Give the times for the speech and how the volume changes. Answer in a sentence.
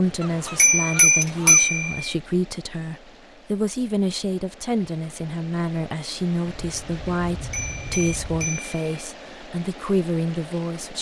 The speech can be heard from 0.0 to 10.9 s, at a steady volume.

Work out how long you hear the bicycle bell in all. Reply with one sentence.
The bicycle bell can be heard for 3 seconds in total.